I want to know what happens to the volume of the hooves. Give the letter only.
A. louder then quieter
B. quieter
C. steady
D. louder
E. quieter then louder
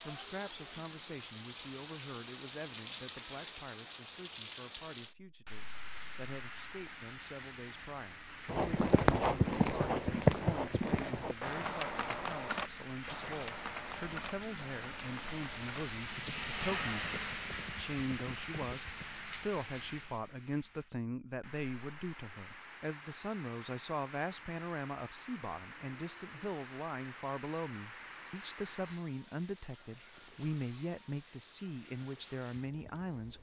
B.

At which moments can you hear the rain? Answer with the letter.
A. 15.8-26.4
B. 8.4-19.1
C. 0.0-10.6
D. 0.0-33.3
D.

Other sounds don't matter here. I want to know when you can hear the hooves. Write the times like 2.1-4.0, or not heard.
8.4-19.1.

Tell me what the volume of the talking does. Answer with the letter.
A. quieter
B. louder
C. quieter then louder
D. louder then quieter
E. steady
B.